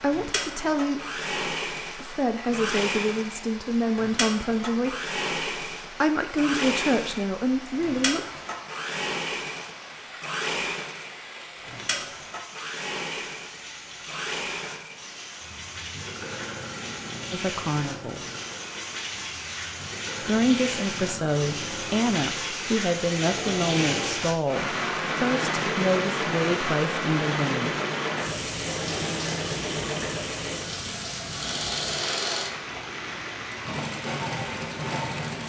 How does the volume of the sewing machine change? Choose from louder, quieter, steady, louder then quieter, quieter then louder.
quieter then louder.